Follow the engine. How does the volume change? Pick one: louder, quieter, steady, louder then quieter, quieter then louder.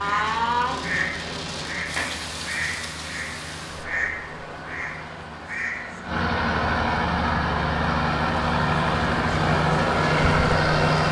louder.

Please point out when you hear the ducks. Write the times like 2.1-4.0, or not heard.
0.0-6.0.